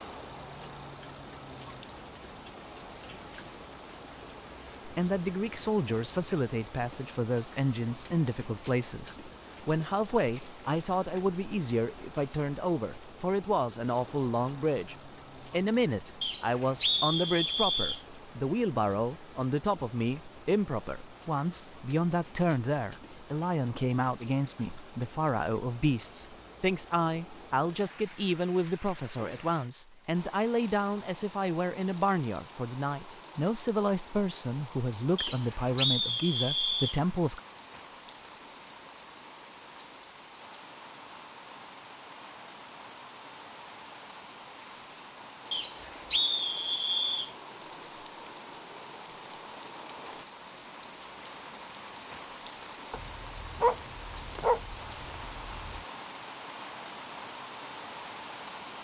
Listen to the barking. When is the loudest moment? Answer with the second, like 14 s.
54 s.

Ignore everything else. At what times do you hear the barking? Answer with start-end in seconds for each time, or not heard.
52.9-55.9.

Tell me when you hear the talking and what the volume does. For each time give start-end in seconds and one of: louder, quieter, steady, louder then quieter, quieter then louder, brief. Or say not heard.
4.8-37.4 steady.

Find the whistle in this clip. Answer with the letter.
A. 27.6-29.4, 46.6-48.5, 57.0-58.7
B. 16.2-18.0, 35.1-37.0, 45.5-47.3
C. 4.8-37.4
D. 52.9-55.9
B.